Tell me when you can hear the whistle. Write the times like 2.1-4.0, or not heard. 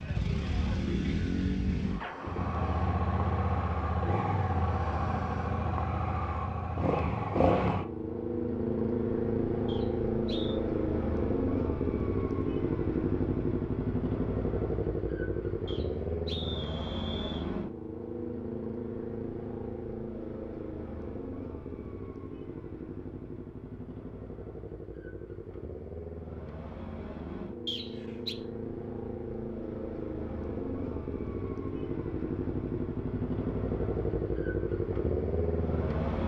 9.7-10.6, 15.7-17.4, 27.6-28.4.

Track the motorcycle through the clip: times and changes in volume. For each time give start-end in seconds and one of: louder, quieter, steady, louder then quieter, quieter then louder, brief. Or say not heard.
0.0-36.2 quieter then louder.